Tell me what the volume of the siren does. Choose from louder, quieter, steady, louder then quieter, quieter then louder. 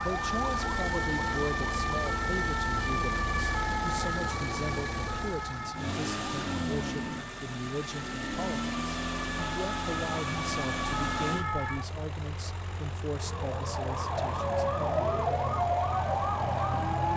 quieter then louder.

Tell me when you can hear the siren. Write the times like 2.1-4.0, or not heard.
0.0-17.1.